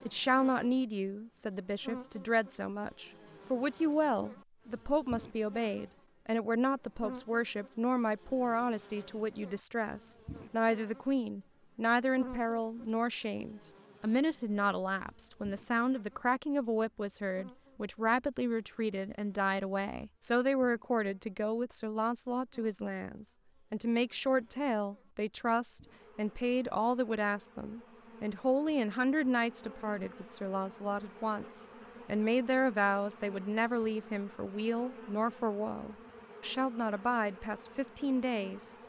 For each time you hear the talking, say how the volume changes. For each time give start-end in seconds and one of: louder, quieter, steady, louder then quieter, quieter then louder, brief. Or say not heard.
0.1-38.8 steady.